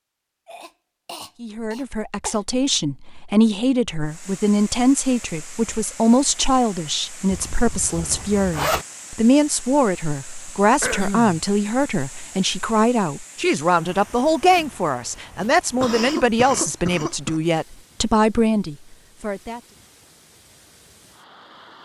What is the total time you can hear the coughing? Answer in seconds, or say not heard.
4 s.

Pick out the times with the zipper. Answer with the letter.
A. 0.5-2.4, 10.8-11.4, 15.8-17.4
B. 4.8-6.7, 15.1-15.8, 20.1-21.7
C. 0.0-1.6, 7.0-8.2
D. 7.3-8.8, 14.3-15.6
D.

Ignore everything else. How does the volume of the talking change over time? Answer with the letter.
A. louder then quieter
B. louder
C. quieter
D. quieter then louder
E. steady
E.